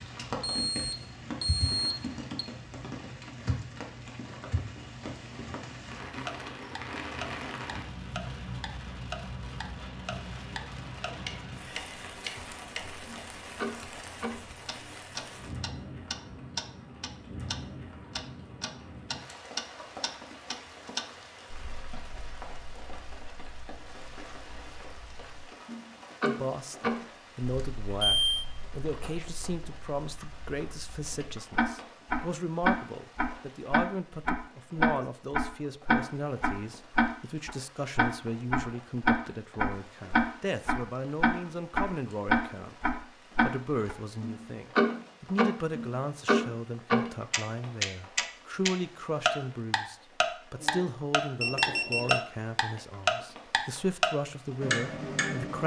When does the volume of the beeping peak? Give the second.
28 s.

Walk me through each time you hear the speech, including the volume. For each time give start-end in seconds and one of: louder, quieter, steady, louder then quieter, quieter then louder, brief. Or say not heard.
26.2-55.6 steady.